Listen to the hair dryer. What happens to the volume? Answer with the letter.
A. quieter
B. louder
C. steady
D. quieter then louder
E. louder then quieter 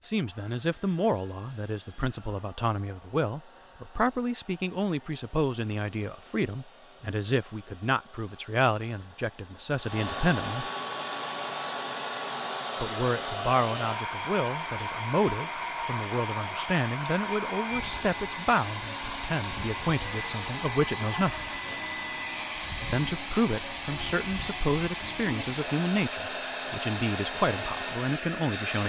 B.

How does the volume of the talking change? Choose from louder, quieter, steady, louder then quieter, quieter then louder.
steady.